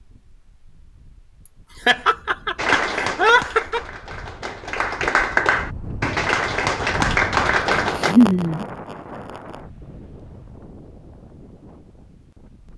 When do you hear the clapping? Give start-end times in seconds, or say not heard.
2.5-8.2.